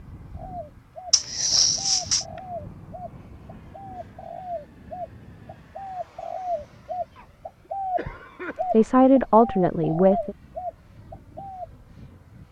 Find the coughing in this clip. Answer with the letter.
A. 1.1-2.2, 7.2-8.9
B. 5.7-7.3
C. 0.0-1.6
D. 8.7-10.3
A.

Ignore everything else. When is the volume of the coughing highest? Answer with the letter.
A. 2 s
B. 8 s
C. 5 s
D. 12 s
A.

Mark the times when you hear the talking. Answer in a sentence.
You can hear the talking from 8.7 to 10.3 s.